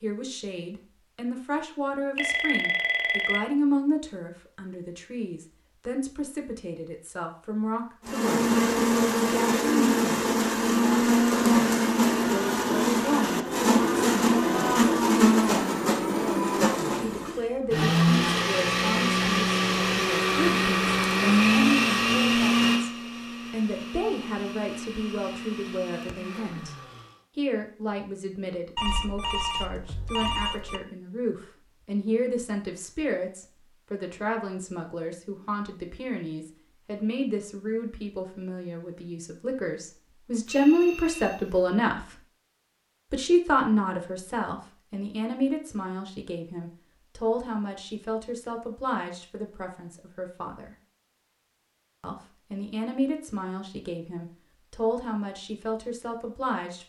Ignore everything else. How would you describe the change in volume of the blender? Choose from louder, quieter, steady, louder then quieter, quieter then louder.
quieter.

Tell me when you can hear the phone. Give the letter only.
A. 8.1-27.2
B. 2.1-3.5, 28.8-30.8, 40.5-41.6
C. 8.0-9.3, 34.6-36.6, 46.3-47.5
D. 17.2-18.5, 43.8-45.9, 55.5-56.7
B.